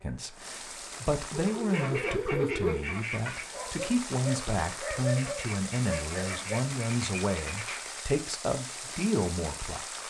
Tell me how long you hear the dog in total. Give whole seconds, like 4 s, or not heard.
5 s.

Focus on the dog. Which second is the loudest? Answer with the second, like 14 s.
3 s.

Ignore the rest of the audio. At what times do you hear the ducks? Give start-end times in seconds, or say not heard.
1.7-3.5, 5.2-8.0.